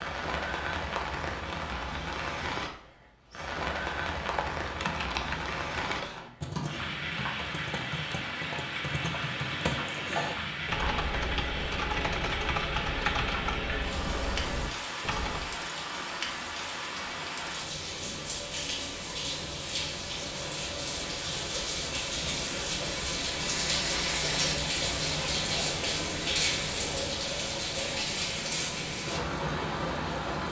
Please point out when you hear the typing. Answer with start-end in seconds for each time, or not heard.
4.3-15.6.